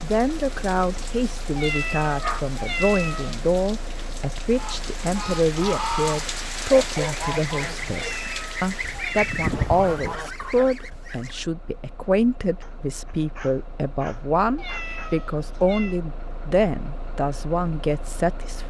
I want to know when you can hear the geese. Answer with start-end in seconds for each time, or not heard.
4.5-11.4.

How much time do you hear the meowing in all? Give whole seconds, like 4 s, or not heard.
5 s.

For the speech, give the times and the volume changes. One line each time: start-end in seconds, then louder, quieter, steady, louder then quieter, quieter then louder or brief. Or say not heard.
0.0-18.6 steady.